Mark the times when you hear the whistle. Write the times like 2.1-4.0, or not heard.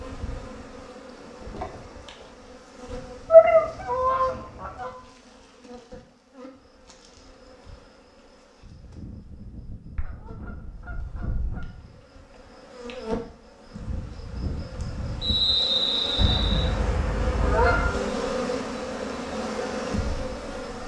15.2-16.7.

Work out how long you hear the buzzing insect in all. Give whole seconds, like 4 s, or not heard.
21 s.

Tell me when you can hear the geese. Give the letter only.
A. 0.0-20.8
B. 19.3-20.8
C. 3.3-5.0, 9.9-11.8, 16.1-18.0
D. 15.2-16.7
C.